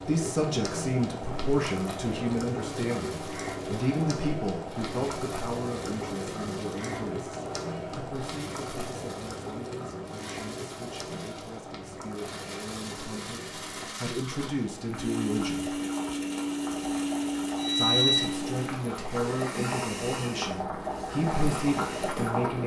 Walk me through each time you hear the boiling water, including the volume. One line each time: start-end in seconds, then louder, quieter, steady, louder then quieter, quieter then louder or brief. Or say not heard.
0.0-22.6 quieter then louder.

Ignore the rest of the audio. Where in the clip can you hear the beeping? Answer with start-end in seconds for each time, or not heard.
17.6-18.3.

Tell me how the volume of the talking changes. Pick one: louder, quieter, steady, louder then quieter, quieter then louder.
quieter then louder.